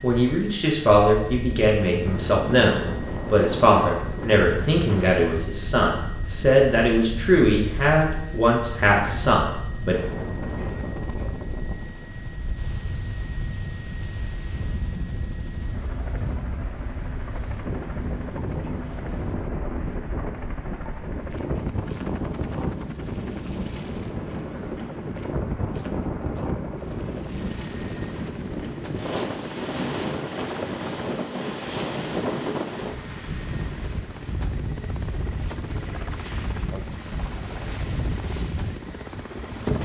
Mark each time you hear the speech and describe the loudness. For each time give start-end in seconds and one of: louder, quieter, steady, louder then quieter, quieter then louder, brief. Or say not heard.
0.0-10.0 steady.